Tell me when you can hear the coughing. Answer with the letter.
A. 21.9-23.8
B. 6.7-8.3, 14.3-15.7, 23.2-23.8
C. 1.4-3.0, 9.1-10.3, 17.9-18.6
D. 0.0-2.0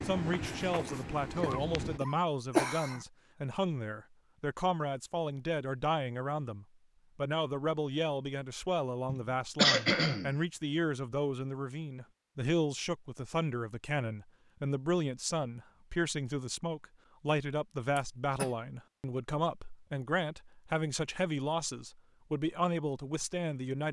C.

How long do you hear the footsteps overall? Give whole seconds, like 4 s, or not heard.
2 s.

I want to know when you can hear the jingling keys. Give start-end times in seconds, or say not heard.
not heard.